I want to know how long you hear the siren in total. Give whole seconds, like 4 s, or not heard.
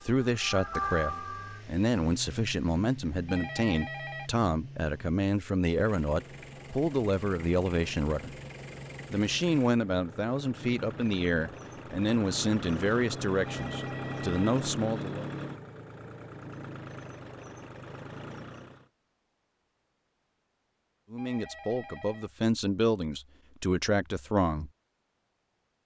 2 s.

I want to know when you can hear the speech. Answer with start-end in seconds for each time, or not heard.
0.0-8.3, 9.1-15.3, 21.1-24.7.